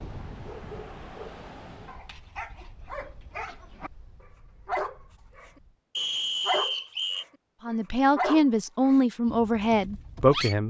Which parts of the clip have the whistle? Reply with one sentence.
The whistle can be heard from 6.0 to 7.2 s.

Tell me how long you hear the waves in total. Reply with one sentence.
The waves can be heard for 6 seconds in total.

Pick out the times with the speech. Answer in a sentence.
You can hear the speech from 7.7 to 10.6 s.